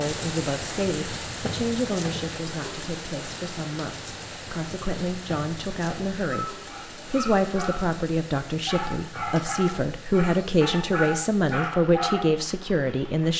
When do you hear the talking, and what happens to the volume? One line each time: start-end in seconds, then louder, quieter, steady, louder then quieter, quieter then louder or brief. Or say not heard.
0.0-13.3 louder.